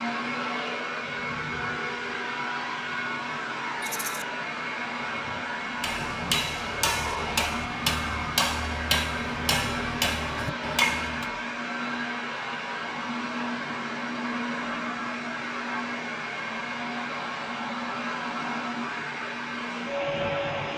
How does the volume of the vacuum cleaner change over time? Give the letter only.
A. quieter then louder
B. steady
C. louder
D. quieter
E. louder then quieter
B.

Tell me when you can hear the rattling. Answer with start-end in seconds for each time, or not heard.
3.8-4.2.